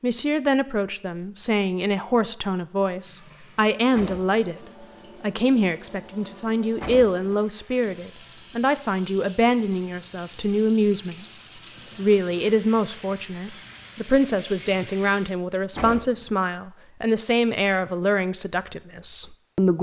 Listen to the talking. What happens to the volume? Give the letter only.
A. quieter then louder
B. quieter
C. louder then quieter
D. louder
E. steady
E.